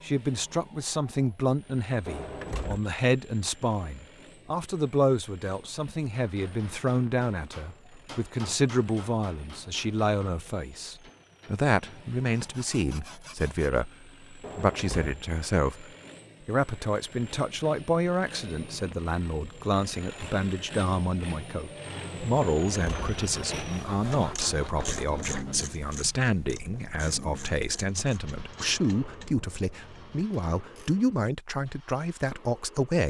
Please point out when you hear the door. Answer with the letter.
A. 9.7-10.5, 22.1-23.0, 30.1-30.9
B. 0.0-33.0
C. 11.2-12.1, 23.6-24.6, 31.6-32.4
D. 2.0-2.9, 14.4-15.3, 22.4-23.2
D.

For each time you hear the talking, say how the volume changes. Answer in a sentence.
The talking can be heard from 0.0 to 33.0 s, at a steady volume.